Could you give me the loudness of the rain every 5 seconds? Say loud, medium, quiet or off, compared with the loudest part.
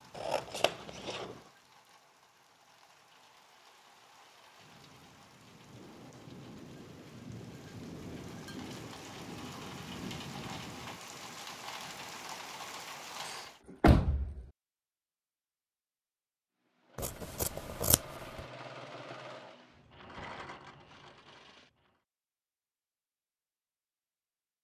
quiet, loud, loud, off, off.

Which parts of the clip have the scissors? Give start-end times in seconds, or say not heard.
0.1-1.4, 16.9-18.4.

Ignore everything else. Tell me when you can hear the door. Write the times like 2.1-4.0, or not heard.
13.2-14.4.